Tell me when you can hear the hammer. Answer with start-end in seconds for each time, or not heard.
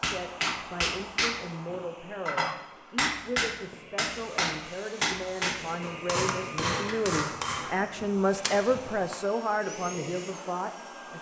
0.0-9.2.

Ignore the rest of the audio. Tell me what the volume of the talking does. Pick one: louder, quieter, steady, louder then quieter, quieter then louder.
louder.